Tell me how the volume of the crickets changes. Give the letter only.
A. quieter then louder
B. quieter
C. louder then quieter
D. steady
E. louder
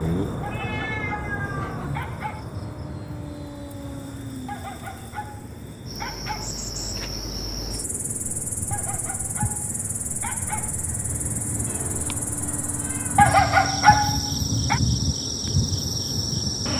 E.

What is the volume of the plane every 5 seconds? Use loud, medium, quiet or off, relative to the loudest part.
medium, medium, loud, loud.